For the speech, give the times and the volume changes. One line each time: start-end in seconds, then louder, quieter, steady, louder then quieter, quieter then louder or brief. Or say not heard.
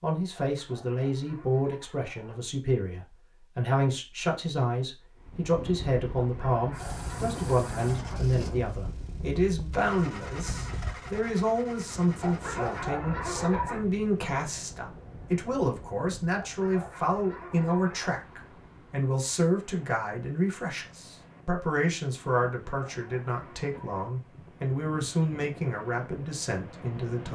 0.0-27.3 steady.